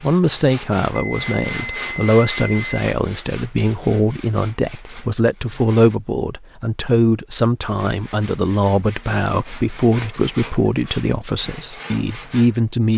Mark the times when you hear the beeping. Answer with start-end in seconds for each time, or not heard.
0.9-2.7.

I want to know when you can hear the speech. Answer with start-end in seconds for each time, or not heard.
0.0-12.9.